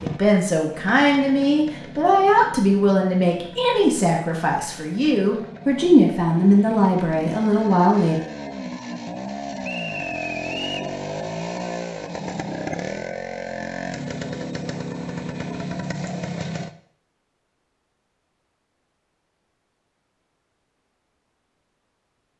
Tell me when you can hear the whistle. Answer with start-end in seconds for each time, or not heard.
9.6-10.9.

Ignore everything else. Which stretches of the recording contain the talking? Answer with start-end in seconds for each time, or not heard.
0.0-8.2.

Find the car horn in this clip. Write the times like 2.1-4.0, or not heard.
not heard.